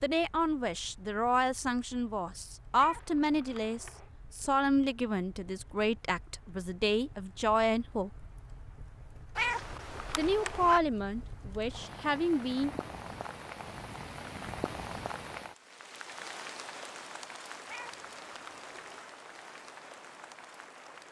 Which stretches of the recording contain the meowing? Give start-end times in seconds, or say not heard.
2.8-4.1, 9.3-10.8, 17.6-19.1.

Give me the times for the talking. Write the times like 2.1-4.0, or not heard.
0.0-8.2, 10.2-12.8.